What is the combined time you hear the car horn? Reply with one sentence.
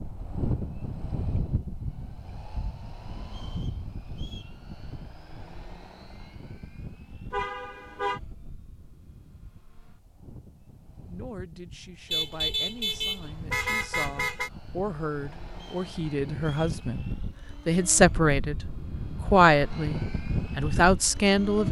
The car horn can be heard for 3 seconds in total.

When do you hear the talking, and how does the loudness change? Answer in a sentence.
The talking can be heard from 10.9 to 21.6 s, getting louder.